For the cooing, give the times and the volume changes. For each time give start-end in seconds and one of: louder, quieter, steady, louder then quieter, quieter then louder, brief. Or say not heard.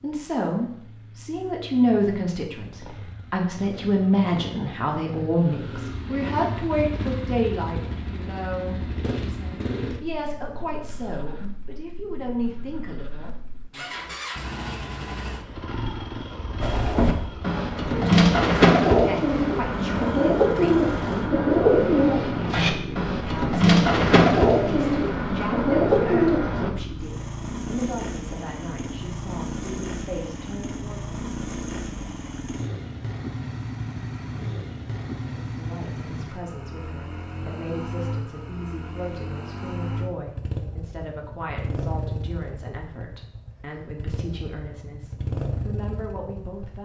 16.6-26.7 steady.